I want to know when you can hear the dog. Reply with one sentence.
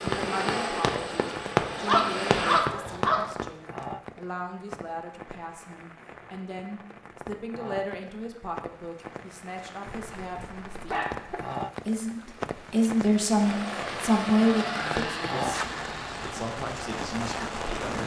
The dog can be heard from 1.7 to 3.3 s and from 9.8 to 11.4 s.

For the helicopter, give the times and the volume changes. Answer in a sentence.
The helicopter can be heard briefly from 0.0 to 2.6 s; and from 13.3 to 18.0 s, getting quieter.